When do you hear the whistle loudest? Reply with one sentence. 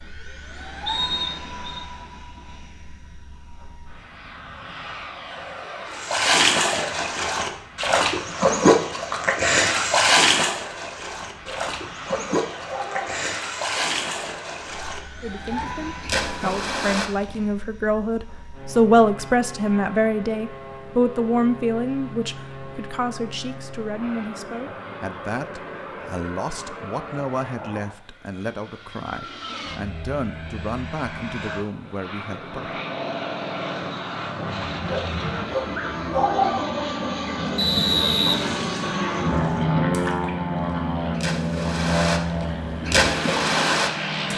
The loudest moment of the whistle is at 38 seconds.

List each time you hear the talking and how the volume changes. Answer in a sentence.
The talking can be heard from 15.2 to 32.8 s, getting quieter.